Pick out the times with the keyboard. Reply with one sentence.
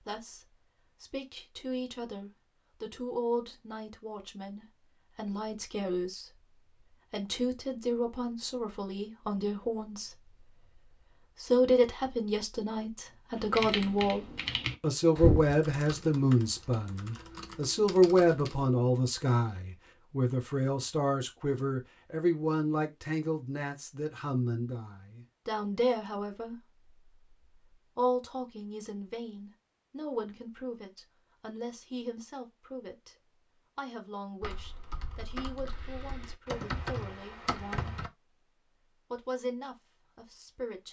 The keyboard can be heard from 13.3 to 18.7 s and from 34.4 to 38.1 s.